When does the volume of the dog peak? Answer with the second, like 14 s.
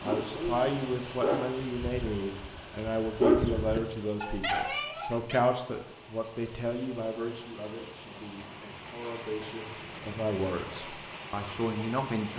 3 s.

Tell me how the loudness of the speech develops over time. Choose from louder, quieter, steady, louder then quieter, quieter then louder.
quieter then louder.